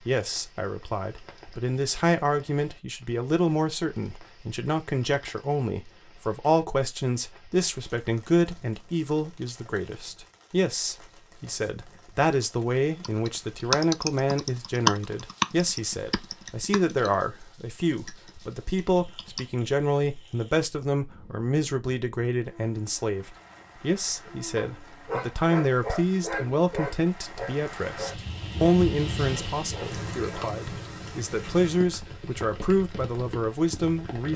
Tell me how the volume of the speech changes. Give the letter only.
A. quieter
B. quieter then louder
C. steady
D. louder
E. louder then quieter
C.